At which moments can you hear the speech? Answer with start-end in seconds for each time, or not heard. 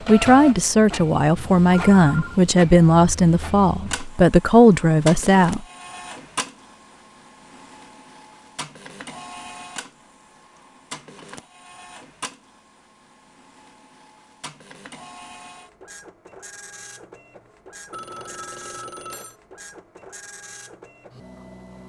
0.1-5.6.